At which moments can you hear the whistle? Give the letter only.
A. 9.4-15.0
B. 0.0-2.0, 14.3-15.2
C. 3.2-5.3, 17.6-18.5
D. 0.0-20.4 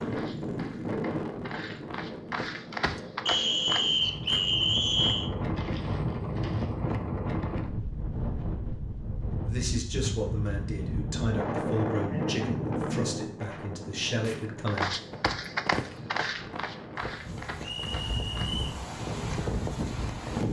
C.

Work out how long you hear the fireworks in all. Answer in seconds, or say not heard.
not heard.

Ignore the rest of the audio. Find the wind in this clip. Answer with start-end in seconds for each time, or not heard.
0.0-20.4.